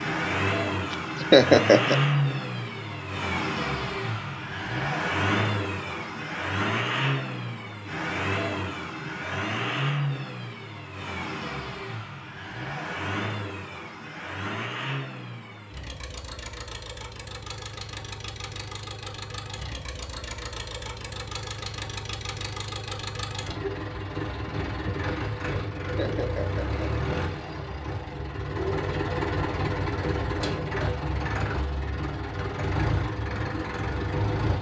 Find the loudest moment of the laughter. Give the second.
1 s.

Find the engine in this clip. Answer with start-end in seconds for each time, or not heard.
0.0-34.5.